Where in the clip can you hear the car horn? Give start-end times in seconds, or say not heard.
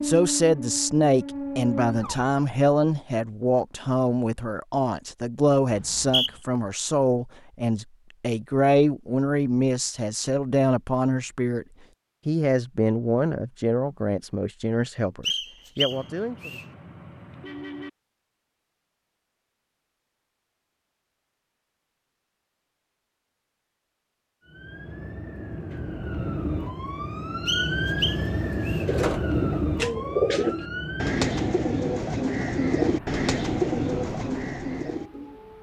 15.9-17.9.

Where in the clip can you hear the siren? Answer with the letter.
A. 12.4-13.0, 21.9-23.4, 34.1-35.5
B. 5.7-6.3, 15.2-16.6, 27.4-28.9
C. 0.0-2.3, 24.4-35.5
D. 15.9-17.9
C.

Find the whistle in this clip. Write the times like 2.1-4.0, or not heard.
5.7-6.3, 15.2-16.6, 27.4-28.9.